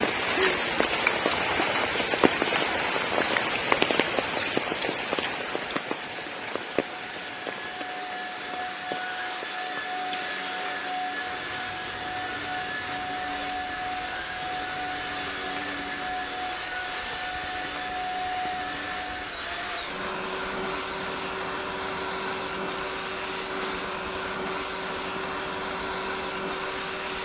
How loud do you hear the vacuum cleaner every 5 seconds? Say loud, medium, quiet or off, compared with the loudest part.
off, loud, loud, loud, loud, loud.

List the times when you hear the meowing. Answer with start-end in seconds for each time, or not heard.
not heard.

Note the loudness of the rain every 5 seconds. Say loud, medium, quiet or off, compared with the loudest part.
loud, medium, quiet, quiet, quiet, quiet.